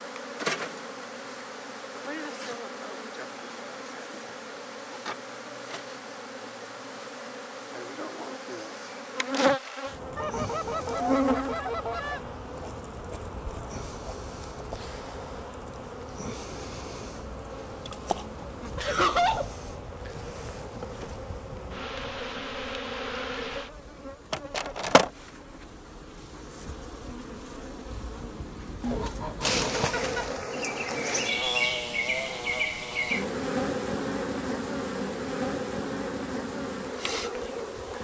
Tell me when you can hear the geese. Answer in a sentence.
You can hear the geese from 10.2 to 12.3 s and from 28.8 to 30.4 s.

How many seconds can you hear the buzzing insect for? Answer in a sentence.
You can hear the buzzing insect for 38 seconds altogether.